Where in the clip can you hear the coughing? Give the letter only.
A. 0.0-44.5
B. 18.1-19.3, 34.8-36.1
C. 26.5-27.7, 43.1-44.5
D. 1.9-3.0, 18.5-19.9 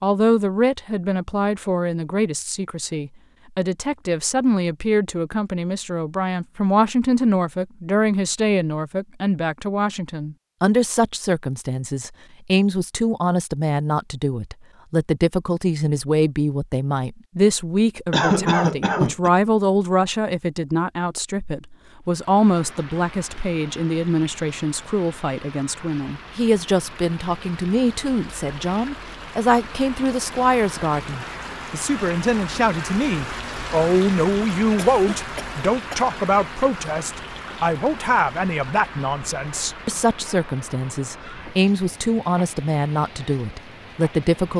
B.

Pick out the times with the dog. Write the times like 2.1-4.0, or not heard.
not heard.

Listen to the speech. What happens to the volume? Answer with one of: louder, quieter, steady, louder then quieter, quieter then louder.
steady.